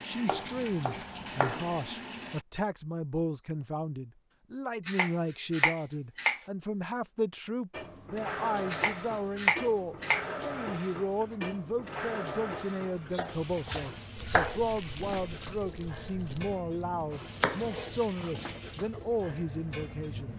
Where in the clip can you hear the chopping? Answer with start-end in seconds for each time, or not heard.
0.2-1.8, 4.8-6.4, 8.7-10.2, 12.8-14.6, 16.3-18.3.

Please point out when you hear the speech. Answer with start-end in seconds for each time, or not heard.
0.0-20.3.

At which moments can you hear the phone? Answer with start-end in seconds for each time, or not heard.
not heard.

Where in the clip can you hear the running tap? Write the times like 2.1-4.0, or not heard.
0.0-2.5, 7.7-20.3.